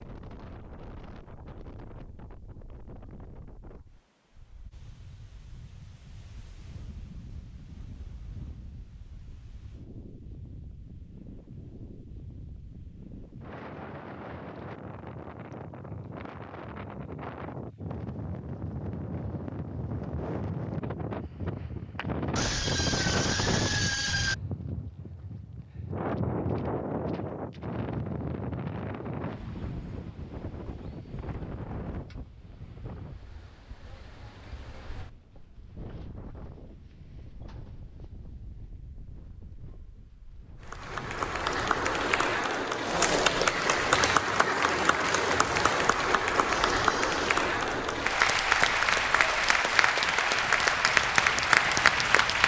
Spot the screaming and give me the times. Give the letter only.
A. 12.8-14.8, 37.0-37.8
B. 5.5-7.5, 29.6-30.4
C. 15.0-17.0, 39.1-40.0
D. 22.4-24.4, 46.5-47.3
D.